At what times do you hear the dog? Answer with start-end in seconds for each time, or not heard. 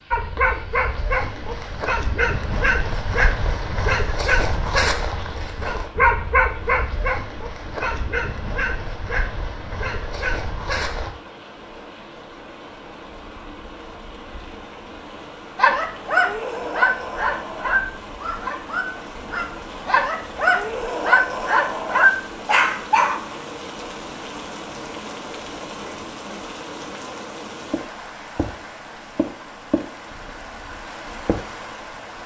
0.1-11.1, 15.6-23.2.